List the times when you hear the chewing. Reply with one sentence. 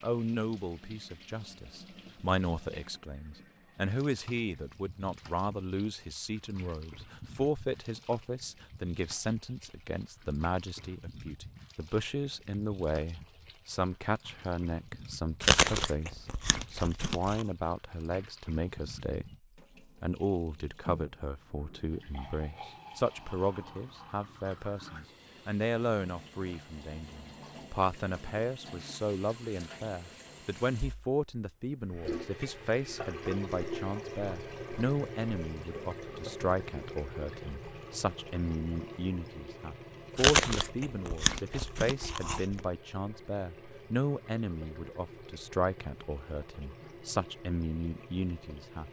The chewing can be heard from 15.4 to 17.4 s and from 40.1 to 42.6 s.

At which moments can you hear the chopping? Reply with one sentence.
You can't hear the chopping here.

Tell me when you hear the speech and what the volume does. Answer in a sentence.
The speech can be heard from 0.0 to 19.3 s, at a steady volume; and from 20.0 to 48.8 s, at a steady volume.